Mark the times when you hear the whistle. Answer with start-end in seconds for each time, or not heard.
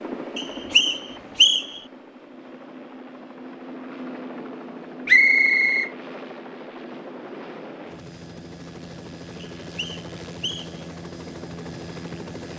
0.3-1.8, 5.0-5.9, 9.4-10.8.